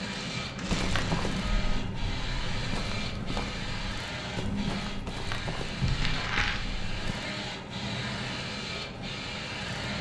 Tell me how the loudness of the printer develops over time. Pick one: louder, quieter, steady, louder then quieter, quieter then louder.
steady.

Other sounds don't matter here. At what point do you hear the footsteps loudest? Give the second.
1 s.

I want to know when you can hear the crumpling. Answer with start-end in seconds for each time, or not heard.
0.1-1.1, 5.8-6.6.